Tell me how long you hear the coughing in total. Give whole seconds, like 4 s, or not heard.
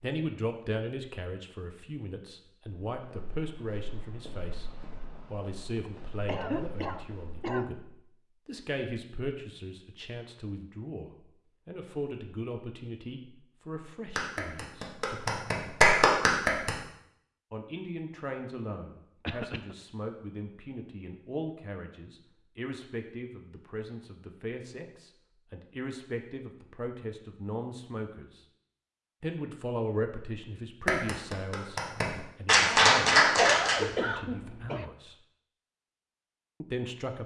4 s.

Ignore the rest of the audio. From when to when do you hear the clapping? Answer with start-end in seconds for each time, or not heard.
14.2-16.7, 30.9-33.8.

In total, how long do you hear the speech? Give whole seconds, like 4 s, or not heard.
32 s.